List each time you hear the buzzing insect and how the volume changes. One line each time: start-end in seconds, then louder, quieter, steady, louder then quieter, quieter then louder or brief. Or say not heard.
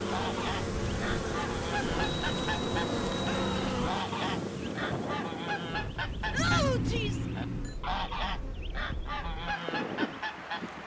0.0-10.6 quieter.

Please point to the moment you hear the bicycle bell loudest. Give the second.
7 s.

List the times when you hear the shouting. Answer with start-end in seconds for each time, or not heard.
3.2-3.9, 6.3-7.2.